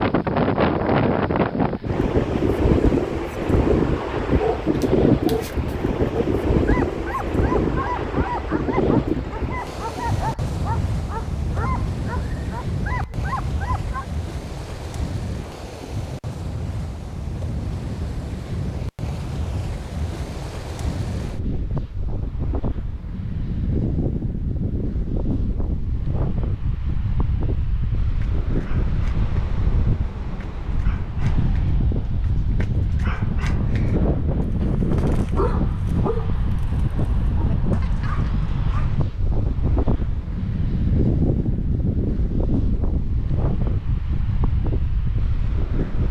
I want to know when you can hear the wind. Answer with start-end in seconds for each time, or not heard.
0.0-46.0.